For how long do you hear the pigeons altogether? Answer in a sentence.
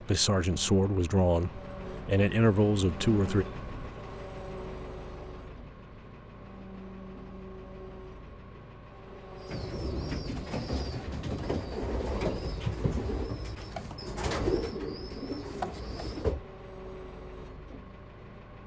The pigeons can be heard for 7 seconds in total.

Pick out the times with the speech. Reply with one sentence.
The speech can be heard from 0.1 to 3.5 s.